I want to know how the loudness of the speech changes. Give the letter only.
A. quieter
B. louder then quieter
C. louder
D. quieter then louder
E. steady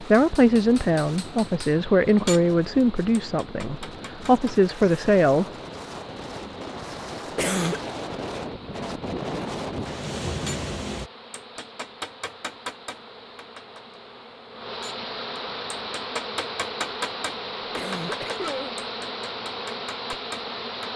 D.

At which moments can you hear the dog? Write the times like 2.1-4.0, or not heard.
not heard.